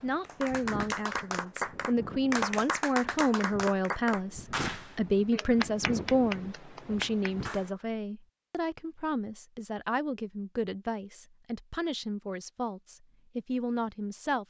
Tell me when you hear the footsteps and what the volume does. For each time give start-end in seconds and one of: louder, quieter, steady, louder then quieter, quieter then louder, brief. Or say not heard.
not heard.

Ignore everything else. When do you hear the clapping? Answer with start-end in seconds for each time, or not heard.
0.2-7.7.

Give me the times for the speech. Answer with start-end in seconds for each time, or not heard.
0.0-14.4.